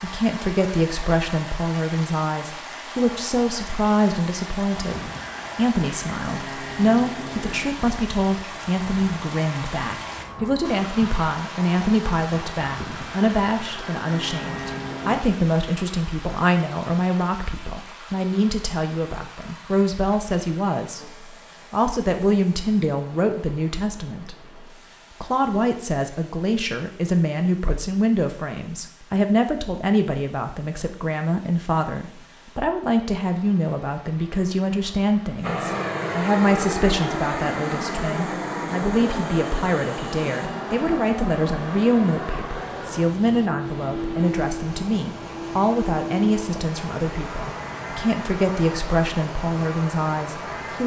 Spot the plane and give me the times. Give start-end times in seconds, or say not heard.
4.7-15.2, 35.4-50.8.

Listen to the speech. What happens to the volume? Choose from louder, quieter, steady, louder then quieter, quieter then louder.
steady.